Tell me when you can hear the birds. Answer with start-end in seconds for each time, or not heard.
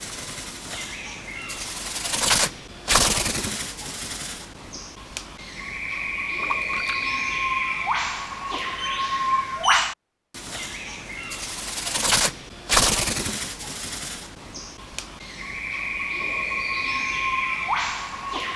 0.0-18.5.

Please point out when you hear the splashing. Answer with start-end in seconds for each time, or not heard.
6.4-7.0.